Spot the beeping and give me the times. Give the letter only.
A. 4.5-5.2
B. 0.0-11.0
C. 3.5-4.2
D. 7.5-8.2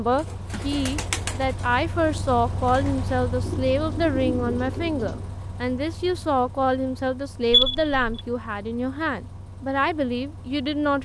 D.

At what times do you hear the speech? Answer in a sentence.
The speech can be heard from 0.0 to 11.0 s.